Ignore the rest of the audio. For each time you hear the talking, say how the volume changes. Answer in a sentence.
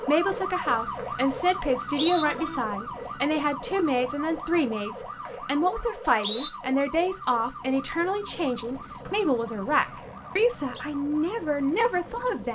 You can hear the talking from 0.1 to 12.5 s, at a steady volume.